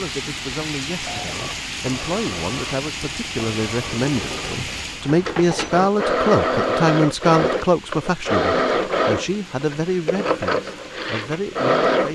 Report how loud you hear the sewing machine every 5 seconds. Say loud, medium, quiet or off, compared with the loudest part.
quiet, loud, loud.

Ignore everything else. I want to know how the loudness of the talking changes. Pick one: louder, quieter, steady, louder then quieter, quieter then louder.
louder then quieter.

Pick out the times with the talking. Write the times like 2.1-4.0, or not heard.
0.0-12.0.